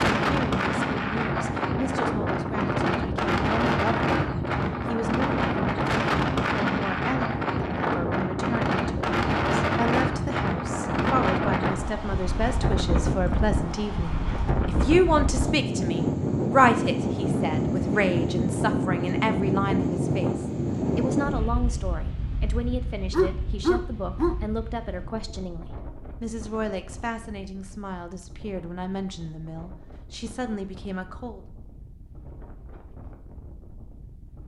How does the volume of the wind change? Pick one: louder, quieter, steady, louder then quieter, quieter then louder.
quieter.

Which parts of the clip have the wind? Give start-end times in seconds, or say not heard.
0.0-34.4.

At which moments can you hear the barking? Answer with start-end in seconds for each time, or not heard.
23.1-24.4.